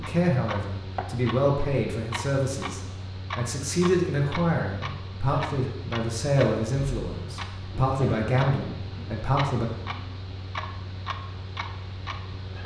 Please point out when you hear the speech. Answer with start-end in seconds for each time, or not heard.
0.0-9.7.